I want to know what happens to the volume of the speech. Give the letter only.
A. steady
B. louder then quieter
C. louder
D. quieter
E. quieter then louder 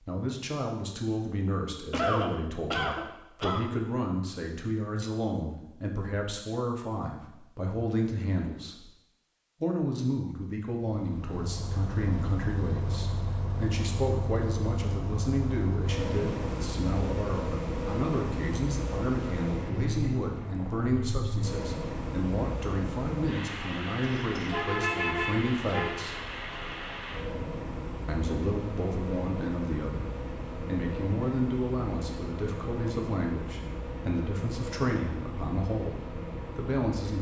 A.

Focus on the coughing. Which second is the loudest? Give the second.
2 s.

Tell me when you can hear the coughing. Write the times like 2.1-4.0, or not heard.
1.9-3.6, 24.0-24.5.